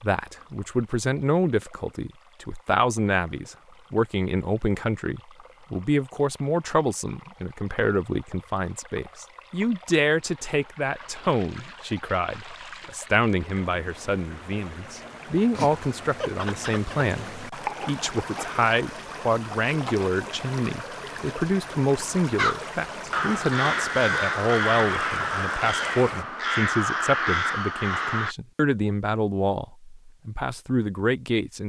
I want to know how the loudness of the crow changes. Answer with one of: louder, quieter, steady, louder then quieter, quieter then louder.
steady.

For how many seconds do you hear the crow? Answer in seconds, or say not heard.
6 s.